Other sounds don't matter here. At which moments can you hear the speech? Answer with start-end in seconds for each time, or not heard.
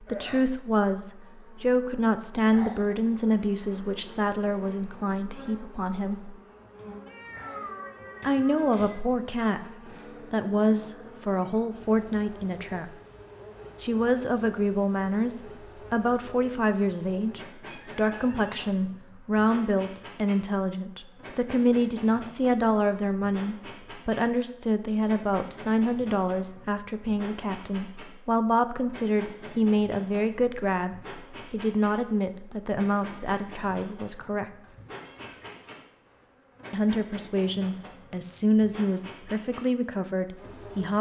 0.0-6.3, 8.2-9.6, 10.3-12.9, 13.8-34.5, 36.7-40.9.